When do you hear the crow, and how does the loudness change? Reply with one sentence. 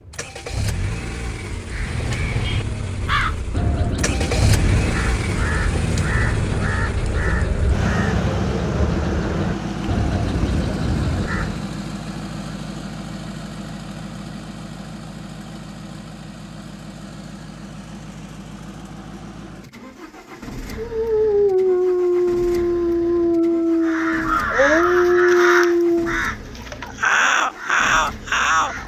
The crow can be heard from 1.7 to 11.7 s, at a steady volume; and from 23.8 to 28.8 s, getting quieter then louder.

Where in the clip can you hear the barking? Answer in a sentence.
The barking can be heard from 20.8 to 26.2 s.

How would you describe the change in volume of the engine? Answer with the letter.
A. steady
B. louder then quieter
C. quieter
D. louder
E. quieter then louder
C.